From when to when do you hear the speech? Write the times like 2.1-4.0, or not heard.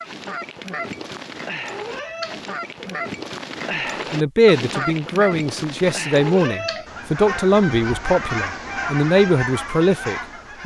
4.1-10.6.